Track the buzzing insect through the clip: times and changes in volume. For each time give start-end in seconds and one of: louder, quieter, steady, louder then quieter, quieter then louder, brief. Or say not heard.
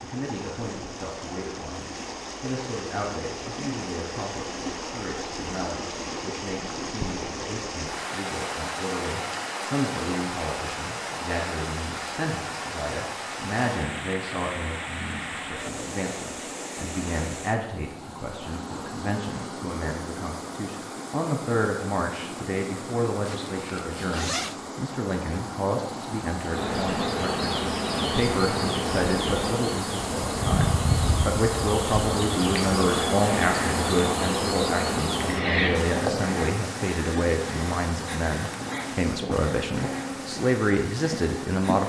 26.4-41.8 quieter.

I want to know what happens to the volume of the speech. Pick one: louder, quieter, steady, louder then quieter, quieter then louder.
louder.